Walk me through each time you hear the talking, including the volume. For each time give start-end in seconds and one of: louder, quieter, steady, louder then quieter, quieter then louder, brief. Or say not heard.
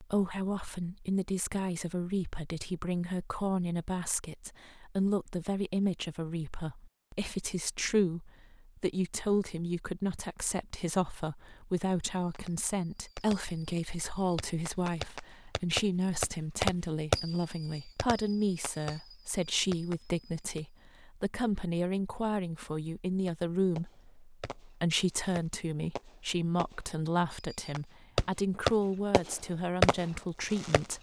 0.0-30.9 steady.